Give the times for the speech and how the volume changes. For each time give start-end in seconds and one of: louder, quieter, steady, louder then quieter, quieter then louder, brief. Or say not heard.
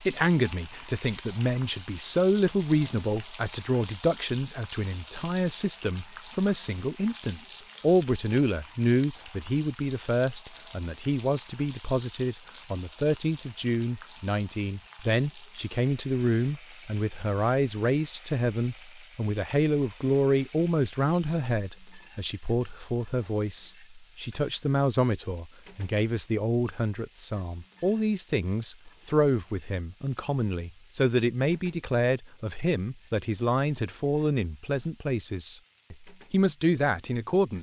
0.0-37.5 steady.